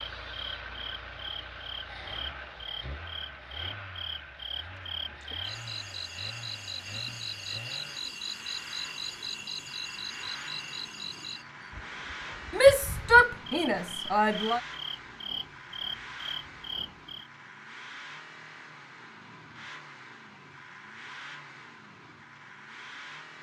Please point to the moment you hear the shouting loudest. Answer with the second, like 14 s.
13 s.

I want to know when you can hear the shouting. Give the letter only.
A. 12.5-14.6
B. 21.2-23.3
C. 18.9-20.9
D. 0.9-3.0
A.